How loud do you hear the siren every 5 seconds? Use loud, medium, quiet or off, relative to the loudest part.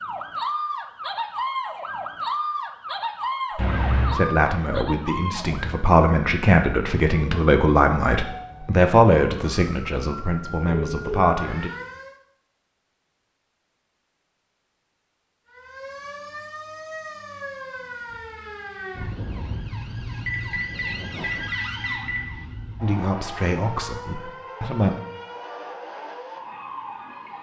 loud, medium, medium, medium, medium, medium.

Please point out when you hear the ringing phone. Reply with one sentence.
The ringing phone can be heard from 3.5 to 4.2 s, from 10.7 to 11.3 s and from 20.2 to 22.2 s.